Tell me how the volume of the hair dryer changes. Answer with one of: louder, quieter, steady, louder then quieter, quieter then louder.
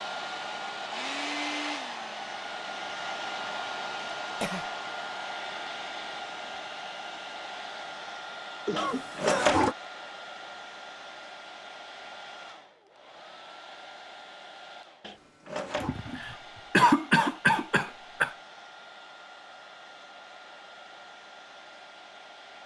quieter.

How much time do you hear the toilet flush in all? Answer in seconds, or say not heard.
2 s.